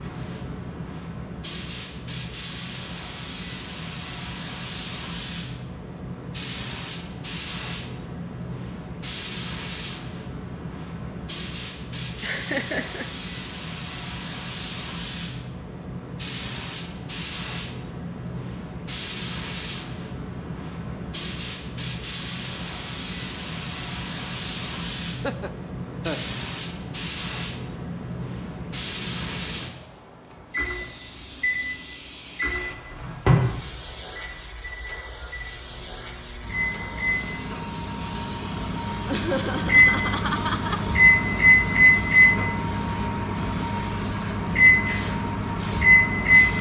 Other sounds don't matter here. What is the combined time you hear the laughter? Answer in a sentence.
The laughter can be heard for 4 seconds in total.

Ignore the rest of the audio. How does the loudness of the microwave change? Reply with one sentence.
The volume of the microwave goes down, then up.